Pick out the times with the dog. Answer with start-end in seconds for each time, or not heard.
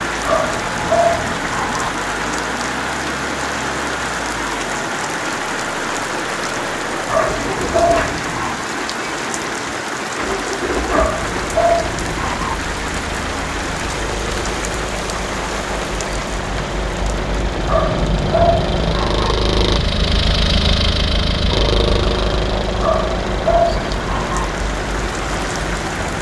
0.2-1.9, 7.0-8.7, 10.9-12.6, 17.6-19.4, 22.8-24.5.